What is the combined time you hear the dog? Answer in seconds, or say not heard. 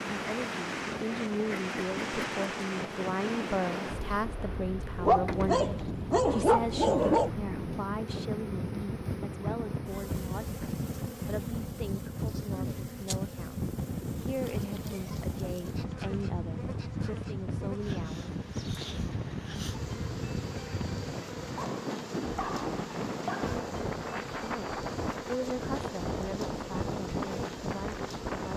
4 s.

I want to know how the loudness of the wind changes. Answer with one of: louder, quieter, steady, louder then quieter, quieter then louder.
steady.